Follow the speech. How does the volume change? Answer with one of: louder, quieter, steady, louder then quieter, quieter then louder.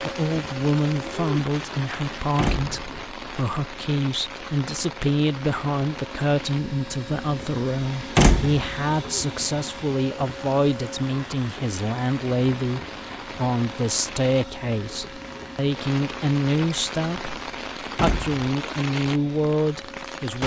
steady.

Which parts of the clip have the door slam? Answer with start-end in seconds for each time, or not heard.
2.4-3.0, 8.2-8.7, 17.9-18.4.